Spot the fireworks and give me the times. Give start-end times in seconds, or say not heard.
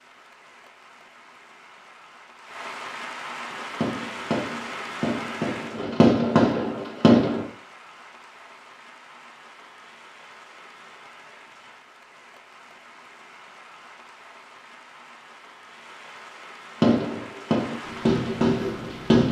3.5-7.5, 16.8-19.2.